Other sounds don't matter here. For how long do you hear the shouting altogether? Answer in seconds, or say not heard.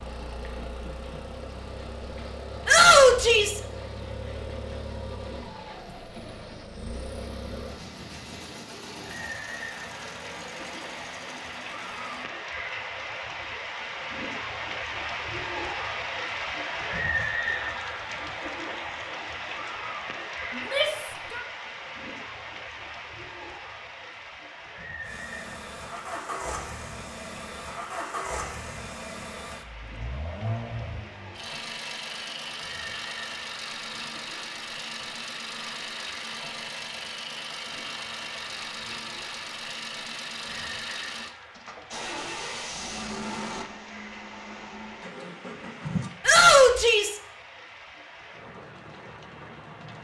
3 s.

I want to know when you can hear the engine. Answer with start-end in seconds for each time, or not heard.
0.0-12.3, 25.1-46.1.